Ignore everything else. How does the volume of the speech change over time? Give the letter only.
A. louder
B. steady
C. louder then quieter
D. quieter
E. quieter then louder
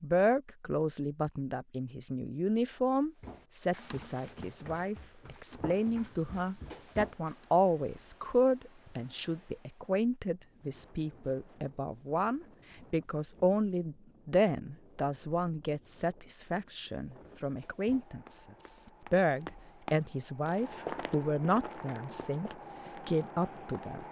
B.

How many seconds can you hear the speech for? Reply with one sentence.
The speech can be heard for 24 seconds in total.